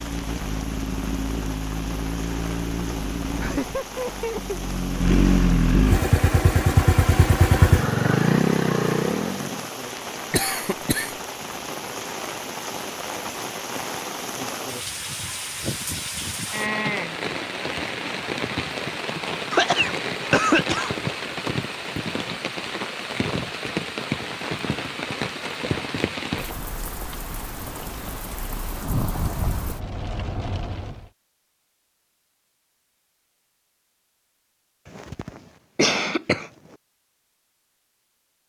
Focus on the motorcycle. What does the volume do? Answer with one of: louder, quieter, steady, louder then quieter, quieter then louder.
louder.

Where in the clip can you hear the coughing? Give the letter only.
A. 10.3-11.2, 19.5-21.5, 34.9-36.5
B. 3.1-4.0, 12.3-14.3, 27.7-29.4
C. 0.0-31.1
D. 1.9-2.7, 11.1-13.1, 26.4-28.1
A.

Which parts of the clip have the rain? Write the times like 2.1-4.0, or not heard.
0.0-31.1.